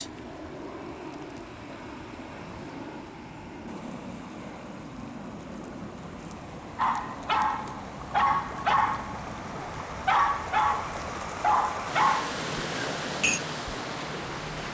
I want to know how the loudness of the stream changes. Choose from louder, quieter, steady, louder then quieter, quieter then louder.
louder.